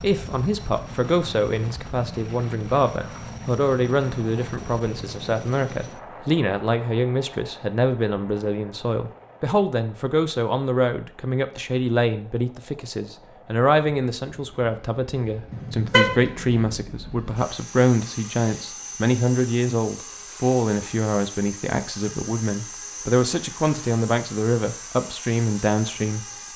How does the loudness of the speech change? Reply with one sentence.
The volume of the speech stays about the same.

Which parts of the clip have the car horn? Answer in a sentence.
You can hear the car horn from 15.5 to 16.8 s.